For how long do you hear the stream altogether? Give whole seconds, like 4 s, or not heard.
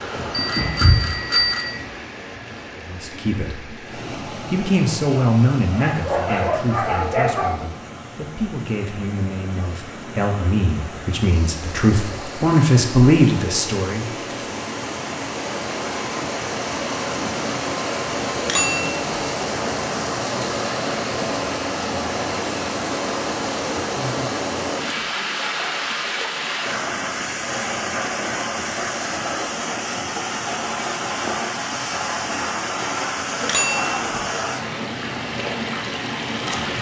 37 s.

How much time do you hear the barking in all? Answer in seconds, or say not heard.
2 s.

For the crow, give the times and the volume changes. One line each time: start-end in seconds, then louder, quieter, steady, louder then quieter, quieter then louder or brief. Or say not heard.
not heard.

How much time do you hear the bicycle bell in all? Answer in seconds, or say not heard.
3 s.